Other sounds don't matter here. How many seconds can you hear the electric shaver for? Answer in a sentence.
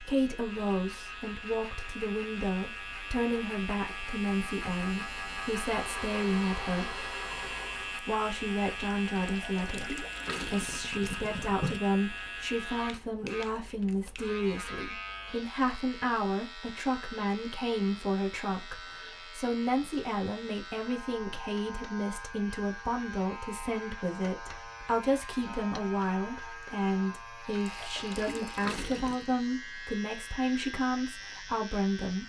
You can hear the electric shaver for 32 seconds altogether.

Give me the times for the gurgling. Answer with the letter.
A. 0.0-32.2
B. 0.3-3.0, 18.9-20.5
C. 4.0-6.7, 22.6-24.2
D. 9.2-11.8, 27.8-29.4
D.